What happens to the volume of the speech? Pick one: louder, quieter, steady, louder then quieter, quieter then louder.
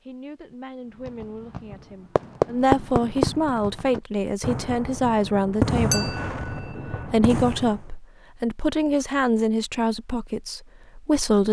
louder.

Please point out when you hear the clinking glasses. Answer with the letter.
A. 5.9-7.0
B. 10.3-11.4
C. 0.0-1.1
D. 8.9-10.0
A.